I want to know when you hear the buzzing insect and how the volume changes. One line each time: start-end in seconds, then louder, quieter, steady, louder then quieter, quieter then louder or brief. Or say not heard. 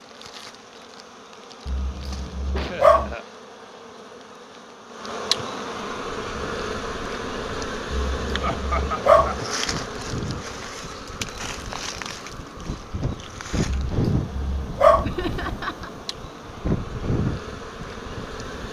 0.0-18.6 louder then quieter.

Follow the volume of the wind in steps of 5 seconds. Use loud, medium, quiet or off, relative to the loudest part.
off, medium, loud, loud.